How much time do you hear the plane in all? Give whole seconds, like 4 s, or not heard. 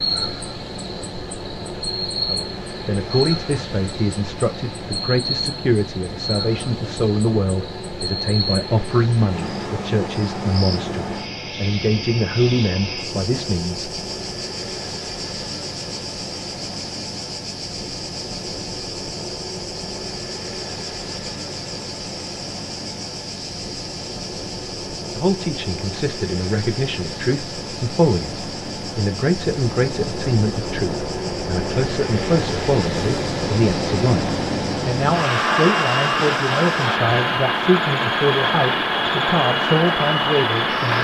41 s.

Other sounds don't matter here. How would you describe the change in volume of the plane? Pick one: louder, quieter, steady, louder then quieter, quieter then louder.
louder.